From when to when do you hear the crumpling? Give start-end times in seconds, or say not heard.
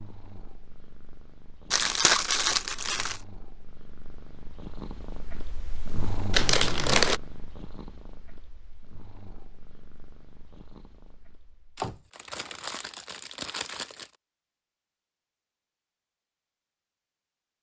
1.7-3.2, 6.3-7.2, 11.8-14.1.